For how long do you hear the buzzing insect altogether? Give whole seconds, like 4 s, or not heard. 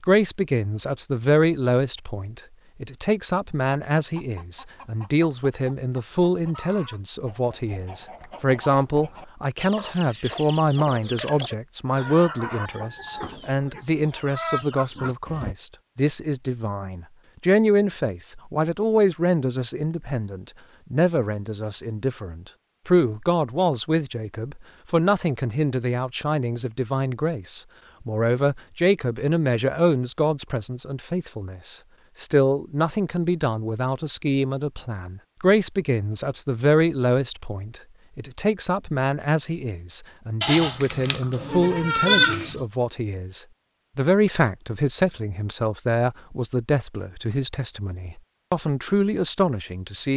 not heard.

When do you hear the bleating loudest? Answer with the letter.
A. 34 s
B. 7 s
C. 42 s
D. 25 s
C.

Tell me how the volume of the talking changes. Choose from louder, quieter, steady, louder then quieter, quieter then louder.
steady.